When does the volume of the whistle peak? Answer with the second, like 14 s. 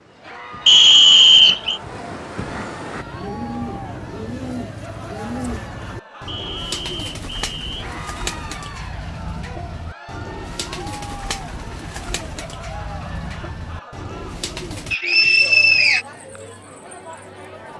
1 s.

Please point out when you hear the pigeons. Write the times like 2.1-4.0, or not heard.
3.0-14.9.